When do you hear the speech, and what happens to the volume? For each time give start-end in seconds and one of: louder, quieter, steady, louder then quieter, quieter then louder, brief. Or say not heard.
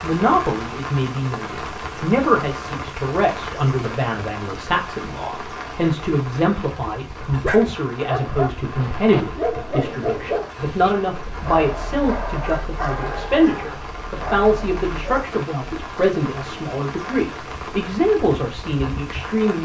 0.0-19.6 steady.